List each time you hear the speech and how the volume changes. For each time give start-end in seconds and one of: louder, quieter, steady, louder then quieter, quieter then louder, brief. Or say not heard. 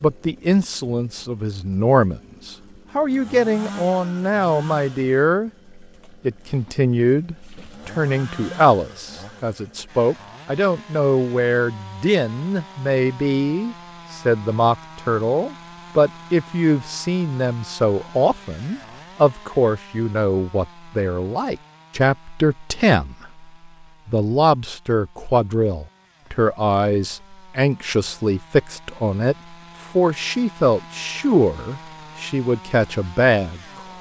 0.0-5.5 steady
6.2-23.4 steady
24.1-33.9 steady.